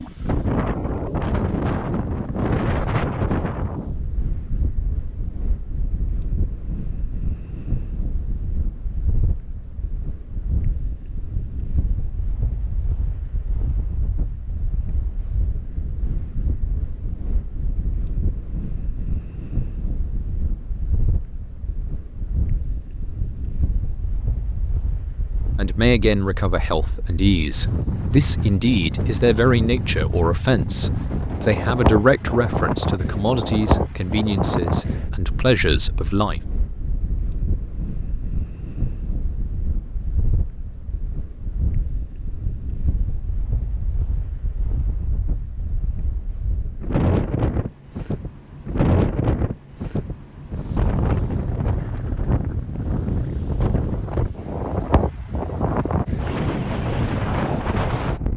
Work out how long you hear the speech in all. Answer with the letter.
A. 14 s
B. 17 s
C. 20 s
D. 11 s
D.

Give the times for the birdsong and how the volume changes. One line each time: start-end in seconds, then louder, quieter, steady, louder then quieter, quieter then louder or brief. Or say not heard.
not heard.